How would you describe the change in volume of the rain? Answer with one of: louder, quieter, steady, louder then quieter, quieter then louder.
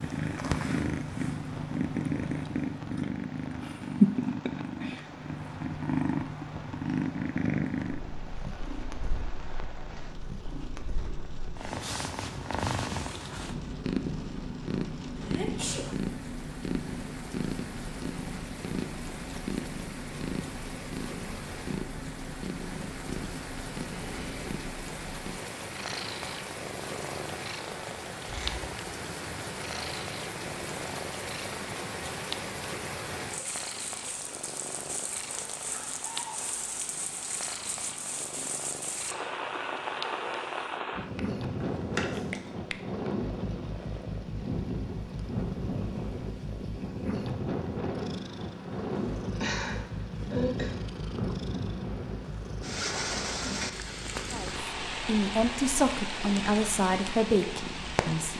louder.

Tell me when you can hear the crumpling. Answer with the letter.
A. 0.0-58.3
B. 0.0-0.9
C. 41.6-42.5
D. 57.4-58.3
C.